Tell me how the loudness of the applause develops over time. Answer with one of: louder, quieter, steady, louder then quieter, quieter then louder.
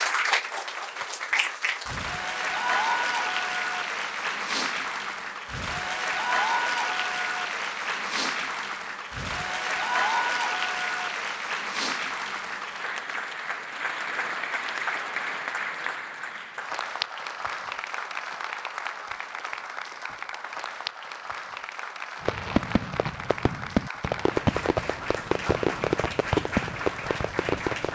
quieter.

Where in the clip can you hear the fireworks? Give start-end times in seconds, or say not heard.
22.2-27.9.